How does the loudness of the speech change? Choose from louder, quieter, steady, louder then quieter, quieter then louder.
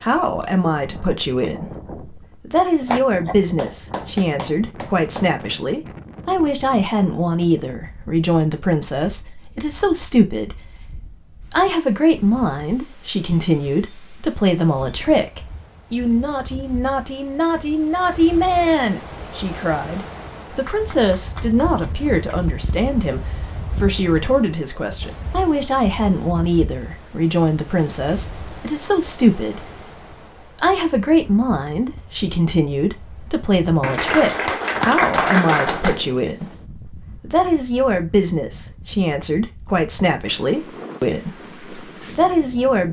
steady.